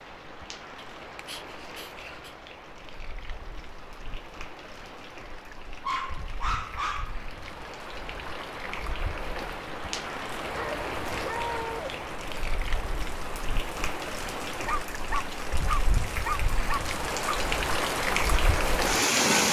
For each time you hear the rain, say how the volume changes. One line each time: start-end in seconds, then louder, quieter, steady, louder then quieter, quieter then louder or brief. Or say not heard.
0.0-19.4 louder.